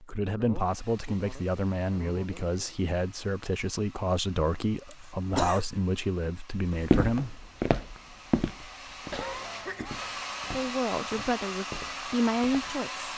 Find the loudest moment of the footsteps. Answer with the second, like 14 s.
7 s.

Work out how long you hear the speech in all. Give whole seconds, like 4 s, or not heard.
10 s.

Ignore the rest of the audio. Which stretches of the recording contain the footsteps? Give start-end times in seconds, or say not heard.
6.7-12.8.